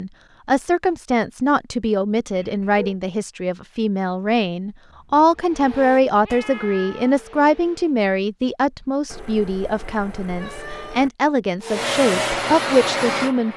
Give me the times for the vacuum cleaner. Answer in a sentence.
The vacuum cleaner can be heard from 5.3 to 8.0 s and from 11.6 to 13.5 s.